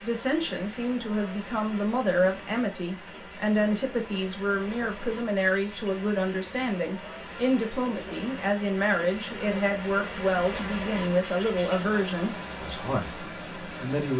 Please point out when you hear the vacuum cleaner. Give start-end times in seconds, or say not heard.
not heard.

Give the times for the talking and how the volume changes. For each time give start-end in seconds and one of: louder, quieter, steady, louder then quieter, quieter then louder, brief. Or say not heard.
0.0-14.1 steady.